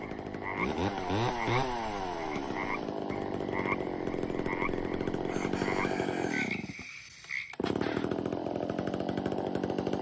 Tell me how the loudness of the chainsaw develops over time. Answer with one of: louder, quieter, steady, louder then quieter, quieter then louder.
steady.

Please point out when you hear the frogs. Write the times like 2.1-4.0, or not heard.
0.0-7.5.